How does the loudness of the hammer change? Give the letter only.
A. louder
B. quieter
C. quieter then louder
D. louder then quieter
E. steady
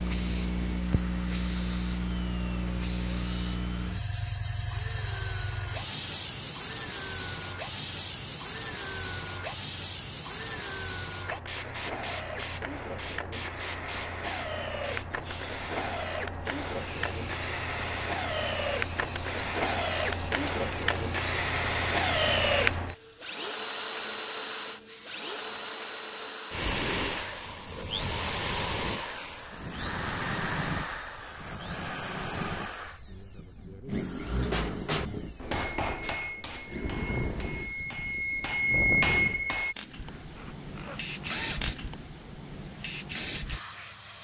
C.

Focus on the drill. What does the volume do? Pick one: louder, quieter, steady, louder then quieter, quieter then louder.
louder then quieter.